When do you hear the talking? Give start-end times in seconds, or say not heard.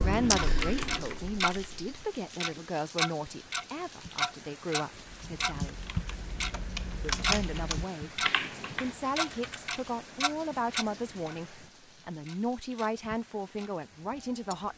0.0-5.8, 7.0-14.7.